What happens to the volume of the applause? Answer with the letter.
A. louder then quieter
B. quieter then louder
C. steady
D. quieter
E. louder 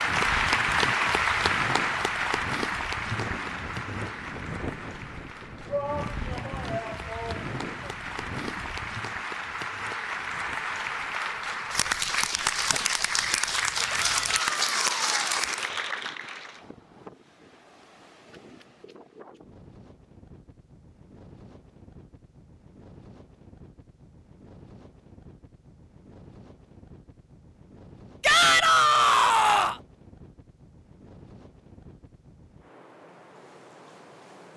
B.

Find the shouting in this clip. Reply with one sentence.
You can hear the shouting from 5.7 to 7.9 s, from 13.9 to 15.5 s and from 28.2 to 29.8 s.